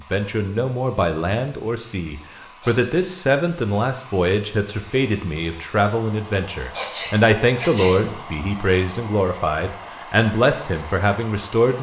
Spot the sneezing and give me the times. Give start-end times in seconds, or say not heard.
2.5-2.9, 6.5-8.1.